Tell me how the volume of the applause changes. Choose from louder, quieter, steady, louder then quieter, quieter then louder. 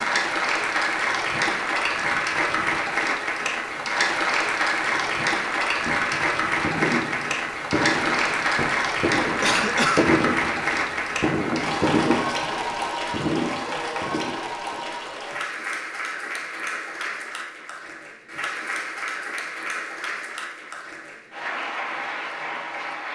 quieter.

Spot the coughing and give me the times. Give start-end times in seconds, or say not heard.
9.4-10.1.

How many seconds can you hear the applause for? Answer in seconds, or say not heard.
23 s.